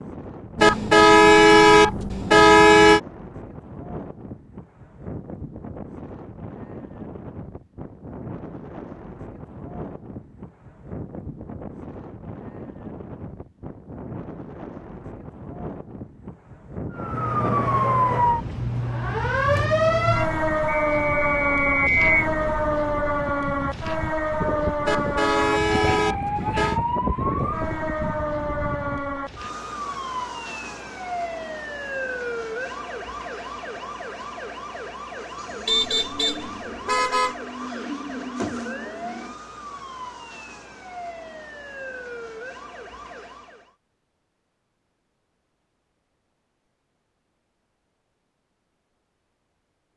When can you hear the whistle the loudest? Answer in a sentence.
The loudest moment of the whistle is at 22 seconds.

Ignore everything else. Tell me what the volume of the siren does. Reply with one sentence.
The volume of the siren goes down.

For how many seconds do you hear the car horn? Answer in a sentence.
The car horn can be heard for 6 seconds in total.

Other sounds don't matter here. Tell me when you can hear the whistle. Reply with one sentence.
The whistle can be heard from 20.6 to 22.1 s.